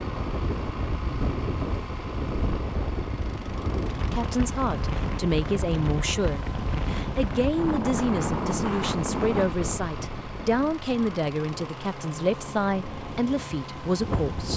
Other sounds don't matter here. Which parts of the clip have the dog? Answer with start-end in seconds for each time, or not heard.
not heard.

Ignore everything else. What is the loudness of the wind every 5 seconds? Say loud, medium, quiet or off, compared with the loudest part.
loud, loud, medium.